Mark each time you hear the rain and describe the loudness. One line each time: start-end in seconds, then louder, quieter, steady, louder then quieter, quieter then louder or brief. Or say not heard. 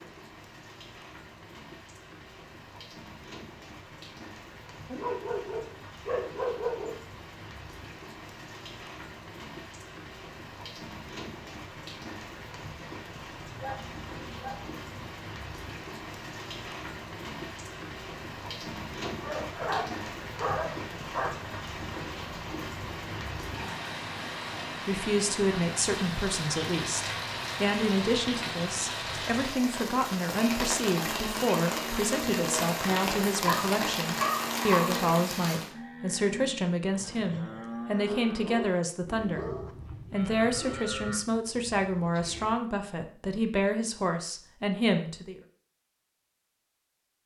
0.0-35.7 louder.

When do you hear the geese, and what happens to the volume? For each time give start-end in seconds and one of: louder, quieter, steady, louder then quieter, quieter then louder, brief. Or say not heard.
not heard.